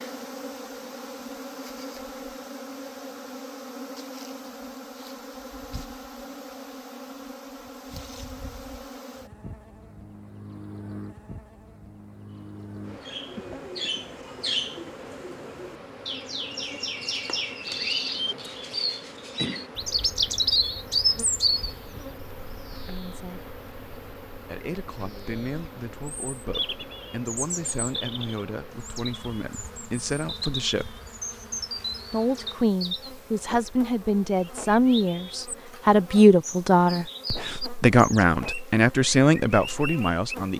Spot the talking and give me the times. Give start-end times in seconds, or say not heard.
22.9-23.5, 24.4-30.9, 32.1-40.5.